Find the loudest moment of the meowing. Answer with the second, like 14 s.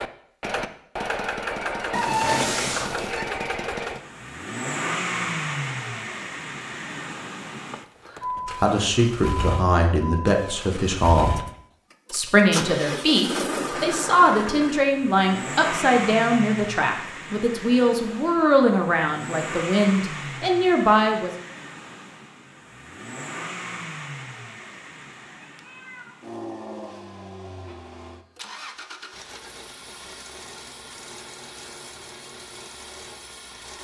2 s.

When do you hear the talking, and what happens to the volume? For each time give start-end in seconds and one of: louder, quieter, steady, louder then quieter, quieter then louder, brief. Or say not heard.
8.6-11.4 brief
12.1-21.3 steady.